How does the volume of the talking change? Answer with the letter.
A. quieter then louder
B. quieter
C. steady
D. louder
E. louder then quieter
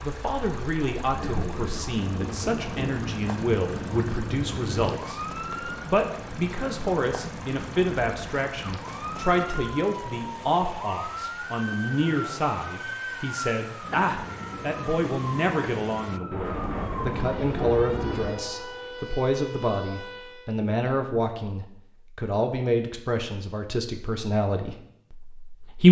C.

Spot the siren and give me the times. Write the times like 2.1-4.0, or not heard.
0.1-20.6.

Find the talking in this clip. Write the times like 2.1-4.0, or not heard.
0.0-25.8.